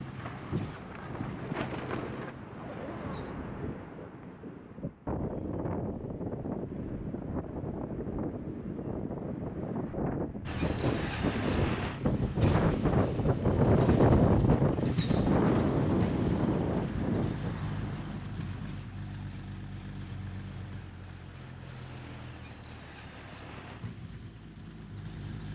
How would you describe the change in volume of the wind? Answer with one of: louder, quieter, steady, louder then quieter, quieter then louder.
louder.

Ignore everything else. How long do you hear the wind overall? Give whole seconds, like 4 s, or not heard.
18 s.